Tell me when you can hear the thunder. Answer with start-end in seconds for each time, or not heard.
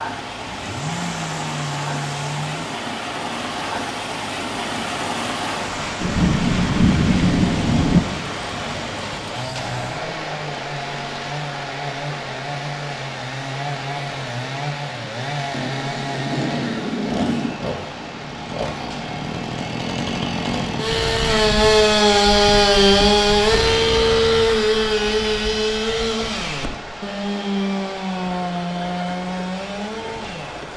6.0-8.0, 15.5-17.6.